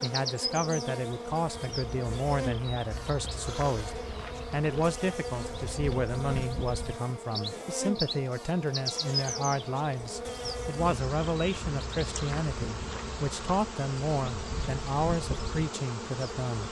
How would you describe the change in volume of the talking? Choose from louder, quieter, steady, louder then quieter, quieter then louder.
steady.